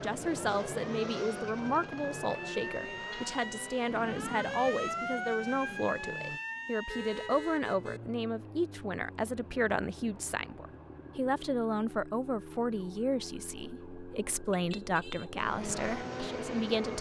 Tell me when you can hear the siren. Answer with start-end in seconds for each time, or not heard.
0.2-16.9.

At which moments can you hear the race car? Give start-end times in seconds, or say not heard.
0.0-6.4, 15.3-16.9.